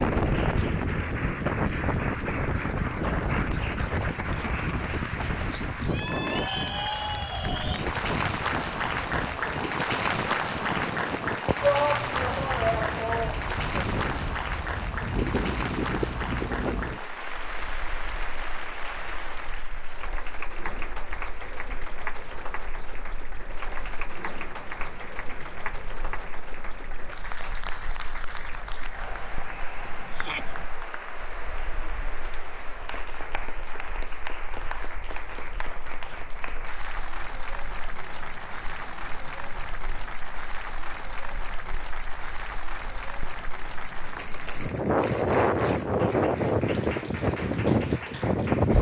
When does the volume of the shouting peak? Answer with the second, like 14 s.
12 s.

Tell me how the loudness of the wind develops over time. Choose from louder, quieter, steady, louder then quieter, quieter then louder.
quieter then louder.